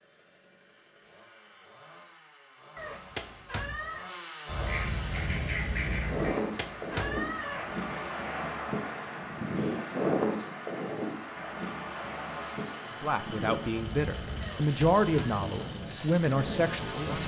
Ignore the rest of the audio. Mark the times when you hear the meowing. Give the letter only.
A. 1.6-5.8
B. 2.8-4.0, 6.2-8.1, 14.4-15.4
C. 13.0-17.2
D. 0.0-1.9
B.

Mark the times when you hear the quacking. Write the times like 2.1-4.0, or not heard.
4.5-6.3.